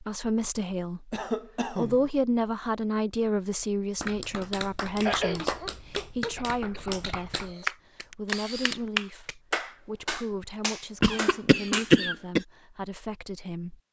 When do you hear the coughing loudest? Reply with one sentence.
The volume of the coughing peaks at 12 seconds.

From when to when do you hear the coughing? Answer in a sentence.
The coughing can be heard from 1.1 to 2.1 s, from 5.0 to 7.7 s and from 11.0 to 12.4 s.